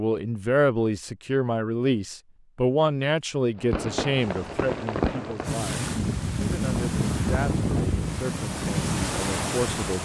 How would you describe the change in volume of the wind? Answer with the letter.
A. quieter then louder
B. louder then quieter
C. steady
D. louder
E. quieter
D.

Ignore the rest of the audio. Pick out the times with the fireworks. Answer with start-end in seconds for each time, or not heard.
3.5-5.7.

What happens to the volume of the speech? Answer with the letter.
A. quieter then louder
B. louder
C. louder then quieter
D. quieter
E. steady
D.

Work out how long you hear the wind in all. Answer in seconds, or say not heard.
6 s.